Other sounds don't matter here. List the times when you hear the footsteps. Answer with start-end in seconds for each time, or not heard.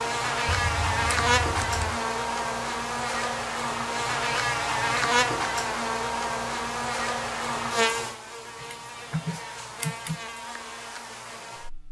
not heard.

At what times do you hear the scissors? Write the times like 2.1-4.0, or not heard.
0.5-2.0, 8.6-10.2.